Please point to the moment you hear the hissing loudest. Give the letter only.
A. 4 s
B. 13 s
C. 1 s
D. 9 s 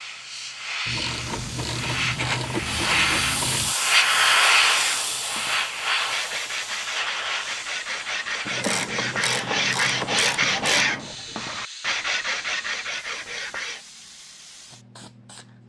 A.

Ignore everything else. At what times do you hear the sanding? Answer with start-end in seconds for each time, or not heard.
4.4-13.8.